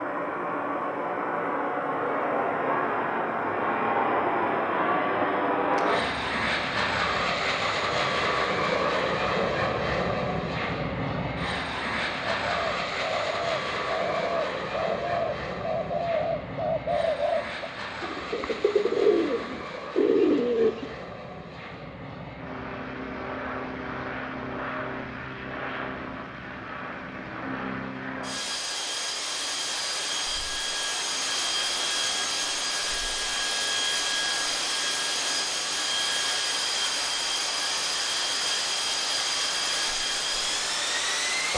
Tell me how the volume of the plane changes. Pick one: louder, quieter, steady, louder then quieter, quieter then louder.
quieter then louder.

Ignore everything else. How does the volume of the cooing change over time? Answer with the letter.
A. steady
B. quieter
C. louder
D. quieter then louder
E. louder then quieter
C.